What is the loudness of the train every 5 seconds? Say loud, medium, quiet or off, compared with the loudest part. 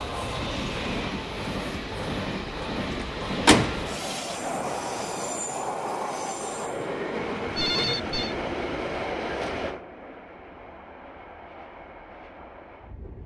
loud, loud, quiet.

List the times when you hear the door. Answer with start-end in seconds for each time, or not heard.
3.0-3.9.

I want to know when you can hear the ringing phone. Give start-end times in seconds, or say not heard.
7.5-8.3.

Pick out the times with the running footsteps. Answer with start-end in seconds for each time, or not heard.
not heard.